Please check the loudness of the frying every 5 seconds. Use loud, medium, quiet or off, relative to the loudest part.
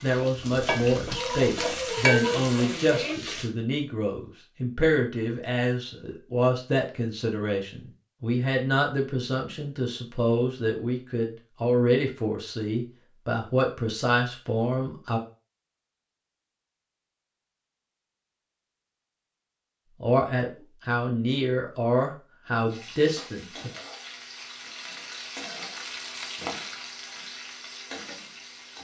loud, off, off, off, quiet, medium.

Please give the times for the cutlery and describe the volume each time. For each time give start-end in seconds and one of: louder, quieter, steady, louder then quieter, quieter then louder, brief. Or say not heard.
not heard.